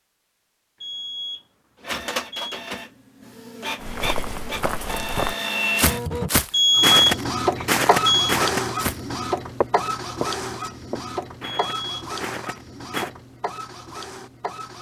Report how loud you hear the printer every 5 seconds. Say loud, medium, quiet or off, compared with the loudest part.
medium, loud, medium.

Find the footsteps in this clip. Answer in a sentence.
The footsteps can be heard from 3.8 to 13.1 s.